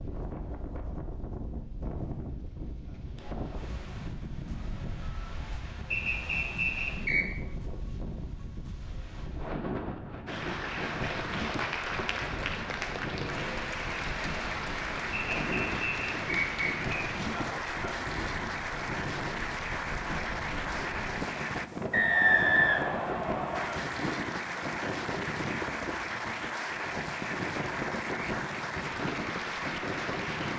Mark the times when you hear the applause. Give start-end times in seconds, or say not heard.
10.2-21.7, 23.5-30.5.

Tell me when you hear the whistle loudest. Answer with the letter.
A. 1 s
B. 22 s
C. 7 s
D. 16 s
B.